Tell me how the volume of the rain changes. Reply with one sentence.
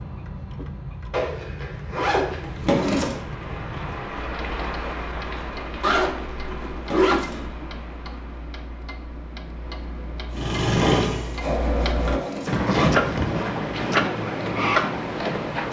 The loudness of the rain goes up, then down.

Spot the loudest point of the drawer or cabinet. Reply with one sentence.
The volume of the drawer or cabinet peaks at 3 seconds.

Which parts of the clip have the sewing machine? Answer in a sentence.
The sewing machine can be heard from 10.3 to 12.6 s.